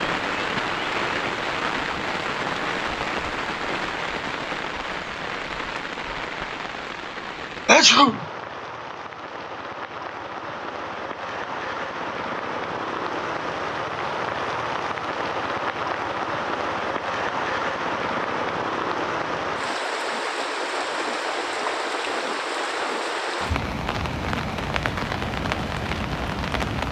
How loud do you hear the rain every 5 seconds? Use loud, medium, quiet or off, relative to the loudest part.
loud, medium, loud, loud, loud, loud.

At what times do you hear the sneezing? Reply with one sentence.
You can hear the sneezing from 7.7 to 8.2 s.